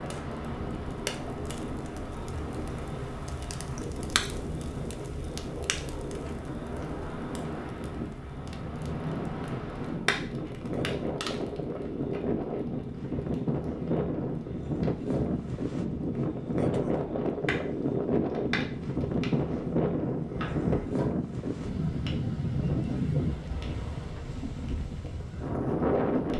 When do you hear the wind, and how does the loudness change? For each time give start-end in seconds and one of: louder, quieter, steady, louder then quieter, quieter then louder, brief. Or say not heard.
0.0-26.3 louder.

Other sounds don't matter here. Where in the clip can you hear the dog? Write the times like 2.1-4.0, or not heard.
not heard.